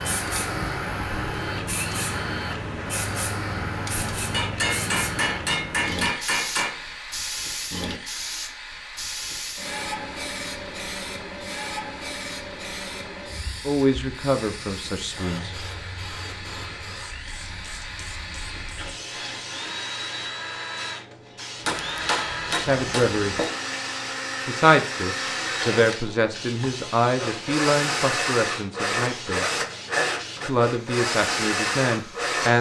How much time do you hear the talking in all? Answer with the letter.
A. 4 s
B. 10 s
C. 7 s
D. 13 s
B.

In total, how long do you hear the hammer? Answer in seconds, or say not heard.
4 s.